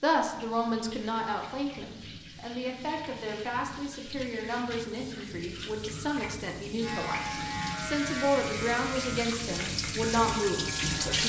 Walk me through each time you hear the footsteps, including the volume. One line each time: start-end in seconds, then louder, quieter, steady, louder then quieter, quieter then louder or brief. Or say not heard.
not heard.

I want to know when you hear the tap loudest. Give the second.
11 s.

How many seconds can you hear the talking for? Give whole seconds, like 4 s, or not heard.
11 s.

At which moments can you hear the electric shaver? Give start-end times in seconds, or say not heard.
6.8-11.2.